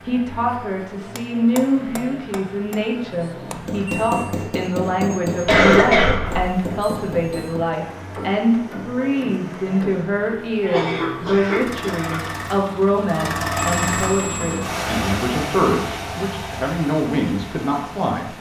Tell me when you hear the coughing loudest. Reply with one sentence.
The volume of the coughing peaks at 6 seconds.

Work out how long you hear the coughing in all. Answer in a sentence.
You can hear the coughing for 3 seconds altogether.